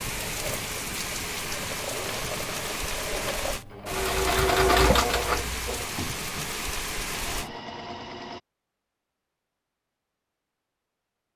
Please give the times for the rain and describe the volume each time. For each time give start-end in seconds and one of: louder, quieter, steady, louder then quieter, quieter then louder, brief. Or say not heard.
0.0-7.6 steady.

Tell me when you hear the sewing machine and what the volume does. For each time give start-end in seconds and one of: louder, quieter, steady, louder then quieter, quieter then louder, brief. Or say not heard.
0.0-8.4 louder then quieter.